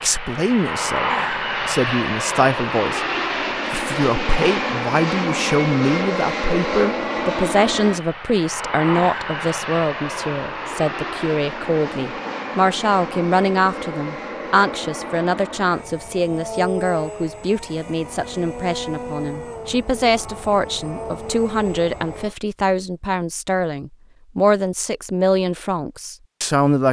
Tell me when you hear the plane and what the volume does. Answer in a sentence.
You can hear the plane from 0.0 to 22.4 s, getting quieter.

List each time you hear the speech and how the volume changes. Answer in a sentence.
The speech can be heard from 0.0 to 26.8 s, at a steady volume.